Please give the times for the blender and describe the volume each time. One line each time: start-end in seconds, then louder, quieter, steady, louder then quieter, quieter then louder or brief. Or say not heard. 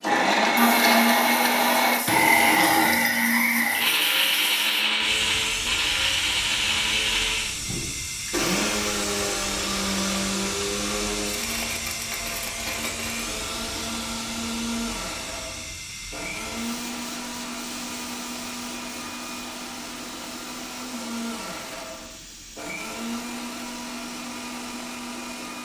0.0-25.6 quieter.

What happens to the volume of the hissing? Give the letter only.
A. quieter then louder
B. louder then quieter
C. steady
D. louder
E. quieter
E.